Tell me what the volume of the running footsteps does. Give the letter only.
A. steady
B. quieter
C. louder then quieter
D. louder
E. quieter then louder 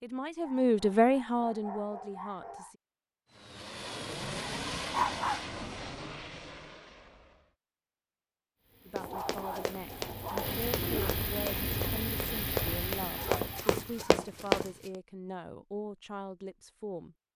D.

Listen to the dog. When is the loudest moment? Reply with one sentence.
The loudest moment of the dog is at 5 seconds.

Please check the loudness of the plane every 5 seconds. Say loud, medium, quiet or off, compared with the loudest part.
loud, medium, loud, off.